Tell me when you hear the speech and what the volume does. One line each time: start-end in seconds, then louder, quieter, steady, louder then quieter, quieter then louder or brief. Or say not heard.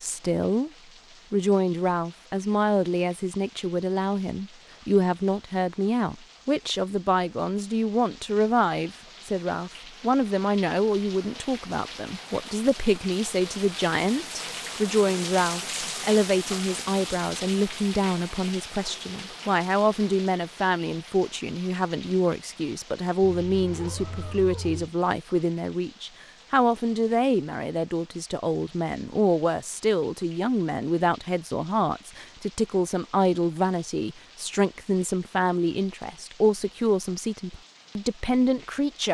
0.0-0.7 brief
1.3-39.0 steady.